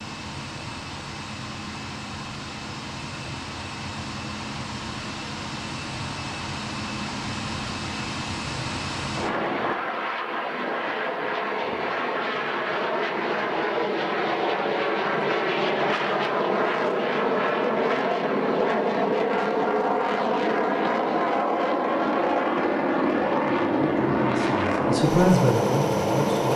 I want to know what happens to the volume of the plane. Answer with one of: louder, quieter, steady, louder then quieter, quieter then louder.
louder.